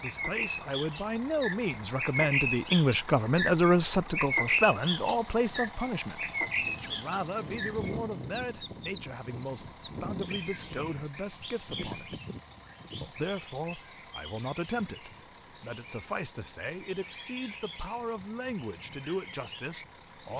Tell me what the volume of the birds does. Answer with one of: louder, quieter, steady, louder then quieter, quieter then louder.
quieter.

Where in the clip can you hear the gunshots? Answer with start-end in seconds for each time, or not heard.
not heard.